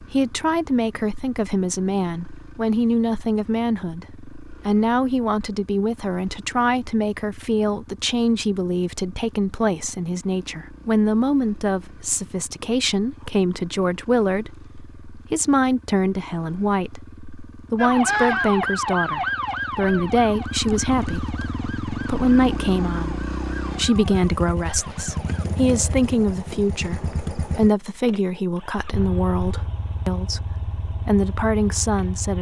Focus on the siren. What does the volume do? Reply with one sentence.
The loudness of the siren goes down.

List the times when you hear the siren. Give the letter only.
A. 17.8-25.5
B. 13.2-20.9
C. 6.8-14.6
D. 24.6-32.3
A.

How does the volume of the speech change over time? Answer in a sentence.
The loudness of the speech stays about the same.